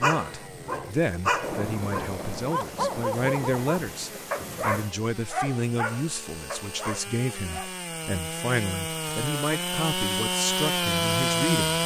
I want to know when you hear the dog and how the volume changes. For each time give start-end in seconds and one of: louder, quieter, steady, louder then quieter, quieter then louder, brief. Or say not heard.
0.0-7.8 quieter.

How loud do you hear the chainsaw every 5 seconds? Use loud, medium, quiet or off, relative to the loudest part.
quiet, medium, loud.